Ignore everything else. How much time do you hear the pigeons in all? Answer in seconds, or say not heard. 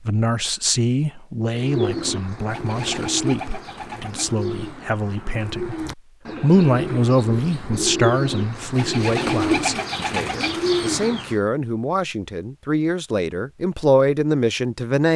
10 s.